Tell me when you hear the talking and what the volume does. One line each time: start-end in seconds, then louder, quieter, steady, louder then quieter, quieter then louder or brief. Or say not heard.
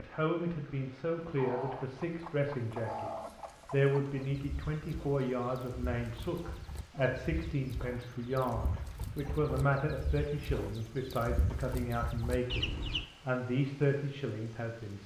0.0-15.0 steady.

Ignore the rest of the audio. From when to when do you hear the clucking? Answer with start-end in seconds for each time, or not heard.
1.2-13.1.